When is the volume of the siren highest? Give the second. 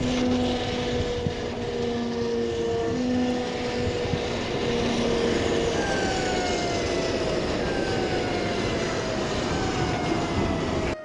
3 s.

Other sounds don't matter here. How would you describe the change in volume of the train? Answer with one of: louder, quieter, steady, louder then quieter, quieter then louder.
louder.